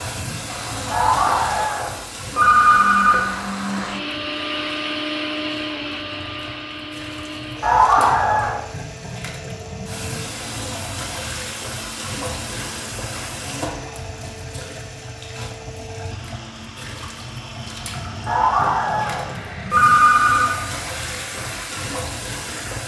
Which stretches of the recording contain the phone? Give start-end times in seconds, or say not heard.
0.9-3.3, 7.6-8.6, 18.2-20.5.